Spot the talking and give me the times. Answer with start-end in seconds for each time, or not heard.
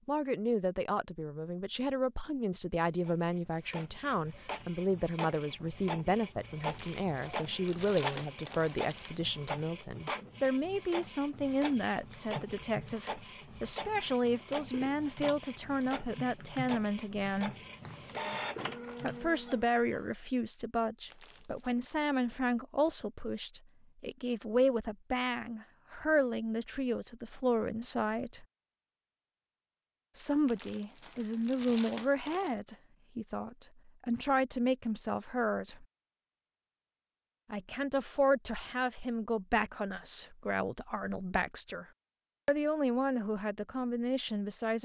0.1-17.6, 19.0-28.4, 30.1-35.9, 37.5-41.9, 42.5-44.7.